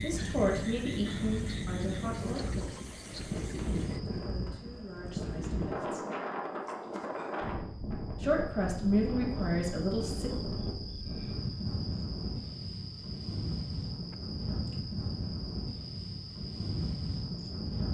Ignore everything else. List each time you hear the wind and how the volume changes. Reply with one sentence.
The wind can be heard from 0.0 to 17.8 s, at a steady volume.